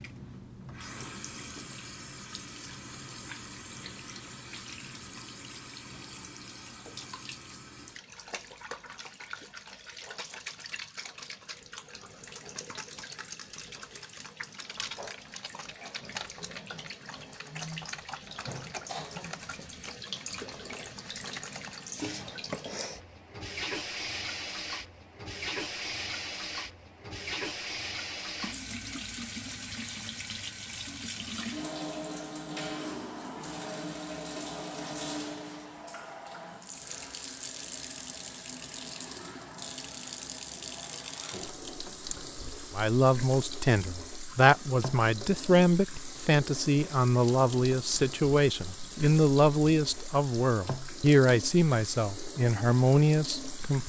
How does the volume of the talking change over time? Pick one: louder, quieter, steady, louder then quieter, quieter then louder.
steady.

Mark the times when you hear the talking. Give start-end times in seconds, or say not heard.
42.8-53.8.